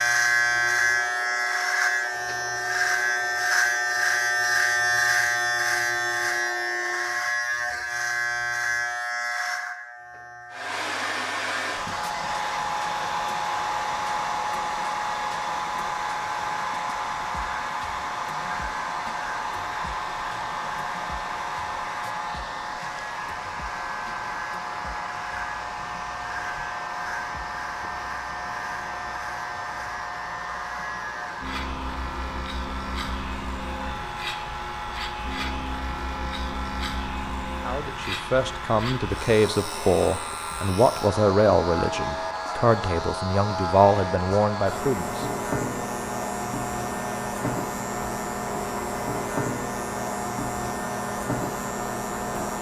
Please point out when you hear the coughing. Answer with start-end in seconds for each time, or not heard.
not heard.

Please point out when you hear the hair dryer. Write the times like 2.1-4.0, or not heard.
0.0-7.2, 10.5-52.5.